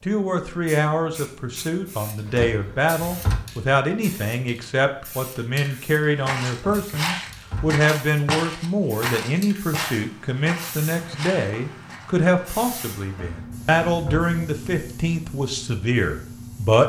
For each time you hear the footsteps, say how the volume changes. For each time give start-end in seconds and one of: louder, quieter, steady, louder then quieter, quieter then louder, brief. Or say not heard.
6.2-12.1 quieter.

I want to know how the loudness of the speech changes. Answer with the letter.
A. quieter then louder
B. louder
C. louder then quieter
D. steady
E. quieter
D.